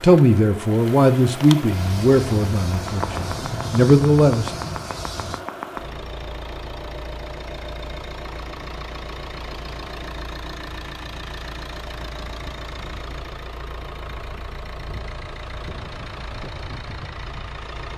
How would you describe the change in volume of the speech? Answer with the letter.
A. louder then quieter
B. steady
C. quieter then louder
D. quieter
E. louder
C.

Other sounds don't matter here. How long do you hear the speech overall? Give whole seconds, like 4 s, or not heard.
5 s.